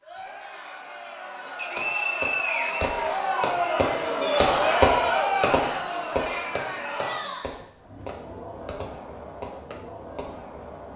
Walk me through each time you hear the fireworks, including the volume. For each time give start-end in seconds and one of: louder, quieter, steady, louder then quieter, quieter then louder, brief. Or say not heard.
1.8-10.4 louder then quieter.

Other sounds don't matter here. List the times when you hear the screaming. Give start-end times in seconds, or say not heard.
not heard.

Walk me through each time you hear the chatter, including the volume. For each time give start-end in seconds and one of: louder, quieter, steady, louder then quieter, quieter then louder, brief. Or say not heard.
0.0-10.9 louder then quieter.